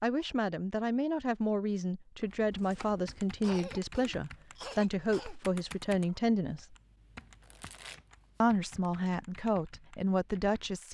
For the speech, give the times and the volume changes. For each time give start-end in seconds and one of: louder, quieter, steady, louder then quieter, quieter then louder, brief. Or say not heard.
0.0-6.8 steady
8.4-10.9 brief.